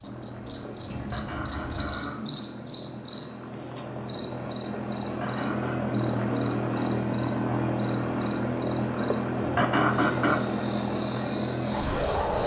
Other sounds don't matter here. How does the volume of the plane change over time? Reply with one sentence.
The loudness of the plane goes up.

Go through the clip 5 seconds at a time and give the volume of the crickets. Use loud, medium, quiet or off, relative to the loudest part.
loud, quiet, quiet.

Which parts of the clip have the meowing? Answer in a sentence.
The meowing can't be heard in this clip.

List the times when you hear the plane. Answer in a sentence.
You can hear the plane from 0.0 to 12.4 s.